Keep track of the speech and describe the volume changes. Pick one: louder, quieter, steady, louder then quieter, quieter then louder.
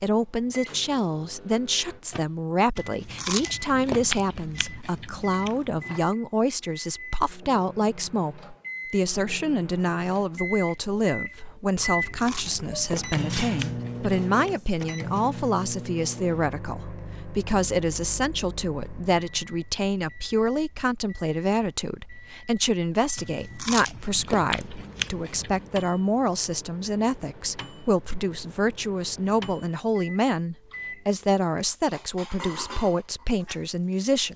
steady.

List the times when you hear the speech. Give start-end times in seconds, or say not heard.
0.0-34.3.